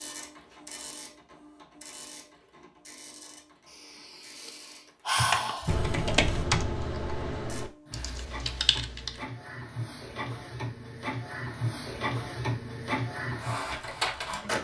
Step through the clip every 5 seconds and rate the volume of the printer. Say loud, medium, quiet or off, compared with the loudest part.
quiet, medium, loud.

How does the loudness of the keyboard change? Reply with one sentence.
The volume of the keyboard goes down, then up.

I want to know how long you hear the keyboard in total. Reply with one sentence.
The keyboard can be heard for 4 seconds in total.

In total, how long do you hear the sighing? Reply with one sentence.
The sighing can be heard for 2 seconds in total.